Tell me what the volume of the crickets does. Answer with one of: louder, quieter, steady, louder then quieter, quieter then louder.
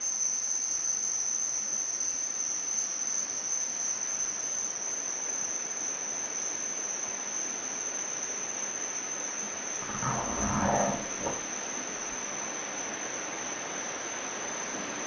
quieter.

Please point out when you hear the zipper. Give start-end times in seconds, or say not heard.
9.8-11.3.